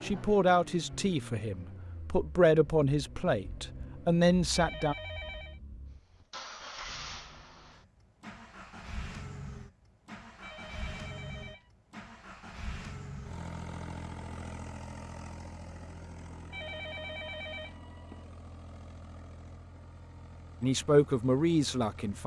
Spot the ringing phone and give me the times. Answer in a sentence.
You can hear the ringing phone from 4.5 to 5.6 s, from 10.4 to 11.7 s and from 16.5 to 18.2 s.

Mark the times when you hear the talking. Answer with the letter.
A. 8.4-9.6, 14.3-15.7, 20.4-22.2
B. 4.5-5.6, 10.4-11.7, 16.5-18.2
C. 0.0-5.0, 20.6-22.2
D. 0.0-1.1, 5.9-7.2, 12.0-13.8
C.